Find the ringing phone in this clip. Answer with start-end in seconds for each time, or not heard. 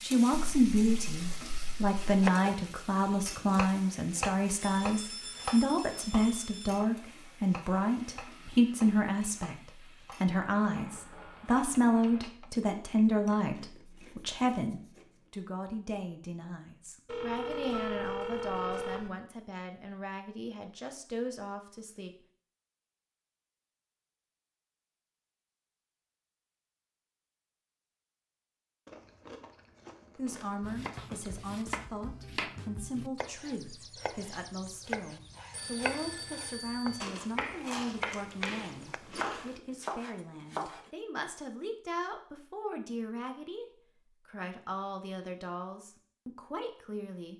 4.6-6.8, 17.1-19.1, 35.5-37.0.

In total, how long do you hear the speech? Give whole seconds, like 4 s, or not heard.
39 s.